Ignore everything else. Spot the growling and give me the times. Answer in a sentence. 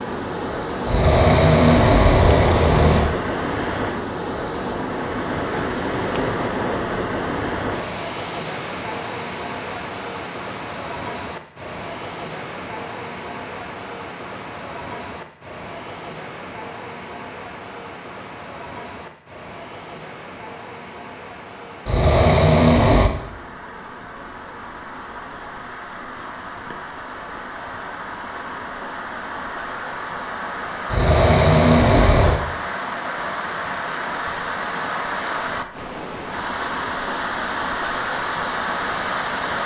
You can hear the growling from 0.8 to 3.1 s, from 21.9 to 23.1 s and from 30.9 to 32.4 s.